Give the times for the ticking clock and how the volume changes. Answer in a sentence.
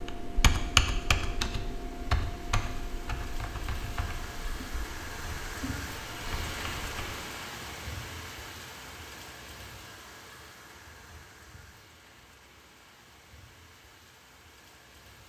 You can't hear the ticking clock here.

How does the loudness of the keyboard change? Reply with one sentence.
The volume of the keyboard goes down.